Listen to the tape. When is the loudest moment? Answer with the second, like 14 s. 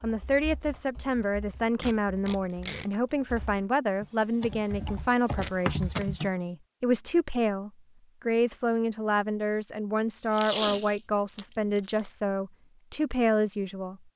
11 s.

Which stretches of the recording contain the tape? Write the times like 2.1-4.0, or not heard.
1.8-2.9, 5.0-6.1, 10.3-12.1.